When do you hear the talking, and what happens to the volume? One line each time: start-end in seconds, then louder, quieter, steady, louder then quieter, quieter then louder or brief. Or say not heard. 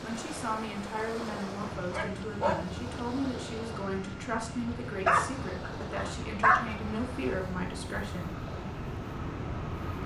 0.0-8.3 steady.